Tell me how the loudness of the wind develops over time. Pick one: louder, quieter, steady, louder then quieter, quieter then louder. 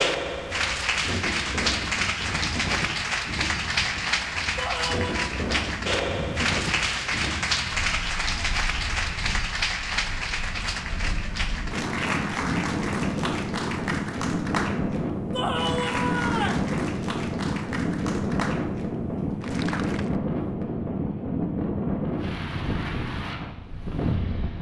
louder.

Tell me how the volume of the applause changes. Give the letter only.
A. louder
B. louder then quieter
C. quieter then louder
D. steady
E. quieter
E.